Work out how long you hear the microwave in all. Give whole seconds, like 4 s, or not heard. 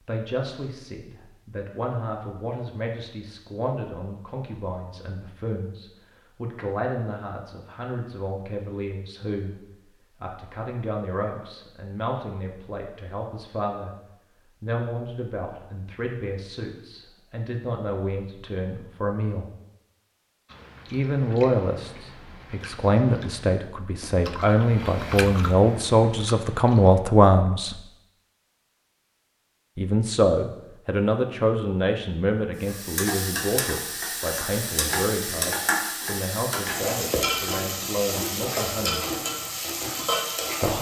not heard.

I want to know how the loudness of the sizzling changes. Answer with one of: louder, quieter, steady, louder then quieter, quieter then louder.
steady.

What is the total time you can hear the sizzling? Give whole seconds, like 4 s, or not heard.
8 s.